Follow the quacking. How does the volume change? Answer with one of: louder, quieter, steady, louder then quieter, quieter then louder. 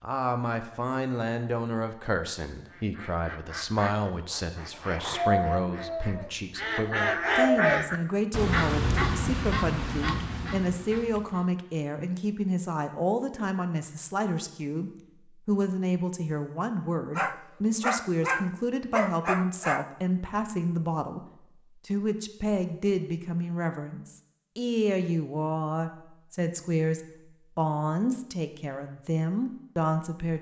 louder then quieter.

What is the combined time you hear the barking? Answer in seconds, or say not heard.
3 s.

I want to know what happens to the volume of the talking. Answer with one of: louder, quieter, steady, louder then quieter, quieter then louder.
steady.